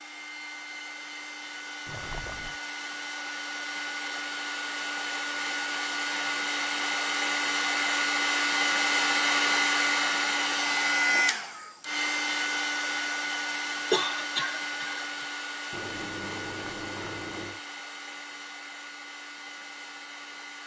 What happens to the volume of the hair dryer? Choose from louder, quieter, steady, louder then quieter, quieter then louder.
louder then quieter.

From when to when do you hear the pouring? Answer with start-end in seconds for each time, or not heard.
1.9-2.6, 15.7-17.6.